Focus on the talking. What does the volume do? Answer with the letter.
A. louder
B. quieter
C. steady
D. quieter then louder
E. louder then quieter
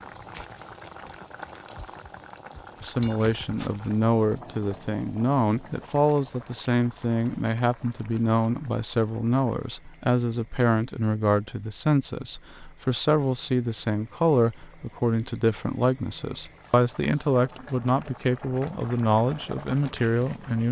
C.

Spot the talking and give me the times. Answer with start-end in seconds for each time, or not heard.
2.8-20.6.